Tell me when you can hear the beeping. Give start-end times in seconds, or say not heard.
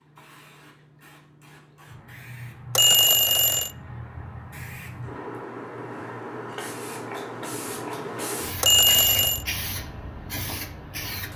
2.8-3.7, 8.6-9.4.